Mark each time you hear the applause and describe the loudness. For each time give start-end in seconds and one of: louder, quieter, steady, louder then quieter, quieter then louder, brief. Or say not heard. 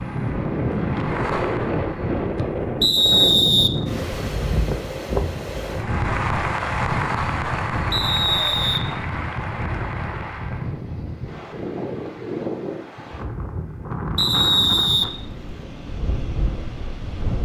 0.0-2.5 brief
5.7-10.8 quieter.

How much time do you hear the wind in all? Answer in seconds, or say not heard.
17 s.